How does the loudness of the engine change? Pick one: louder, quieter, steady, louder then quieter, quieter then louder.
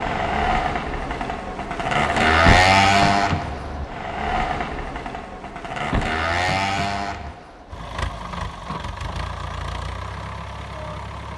quieter.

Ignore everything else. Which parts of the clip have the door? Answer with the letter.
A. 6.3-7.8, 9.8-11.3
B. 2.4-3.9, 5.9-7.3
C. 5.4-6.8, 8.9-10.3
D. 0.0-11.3
B.